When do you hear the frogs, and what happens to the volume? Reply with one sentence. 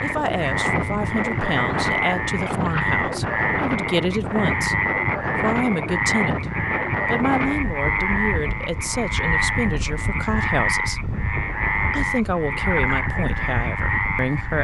The frogs can be heard from 0.0 to 14.5 s, at a steady volume.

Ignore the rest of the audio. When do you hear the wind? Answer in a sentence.
The wind can be heard from 0.0 to 14.5 s.